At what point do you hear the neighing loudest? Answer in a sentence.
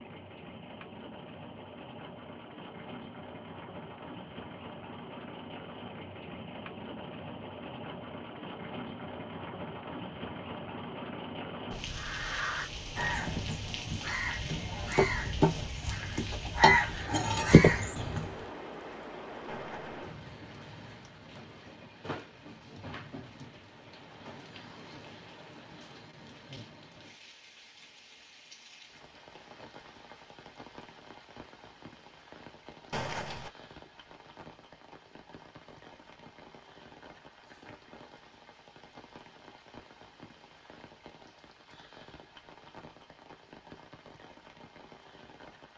The loudest moment of the neighing is at 33 seconds.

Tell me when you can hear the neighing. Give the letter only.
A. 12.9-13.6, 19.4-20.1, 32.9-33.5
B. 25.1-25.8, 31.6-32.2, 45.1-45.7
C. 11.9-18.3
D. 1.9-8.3
A.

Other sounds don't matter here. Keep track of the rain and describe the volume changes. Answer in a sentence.
The volume of the rain goes down.